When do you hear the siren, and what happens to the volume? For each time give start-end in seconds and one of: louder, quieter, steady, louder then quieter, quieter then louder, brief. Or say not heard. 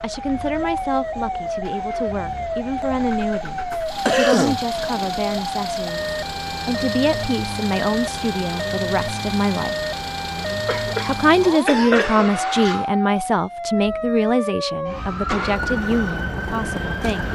0.0-17.3 steady.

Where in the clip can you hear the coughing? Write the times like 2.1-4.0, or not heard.
3.7-4.7, 10.7-12.3.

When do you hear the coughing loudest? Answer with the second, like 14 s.
4 s.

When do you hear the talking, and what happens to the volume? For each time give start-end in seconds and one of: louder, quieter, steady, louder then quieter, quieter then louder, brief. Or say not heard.
0.0-9.8 steady
11.1-17.3 quieter.